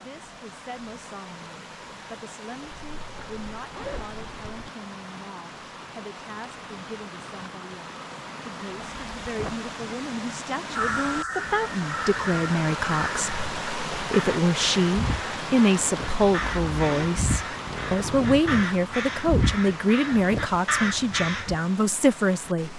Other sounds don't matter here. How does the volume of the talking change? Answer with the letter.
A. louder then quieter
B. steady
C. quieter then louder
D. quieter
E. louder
E.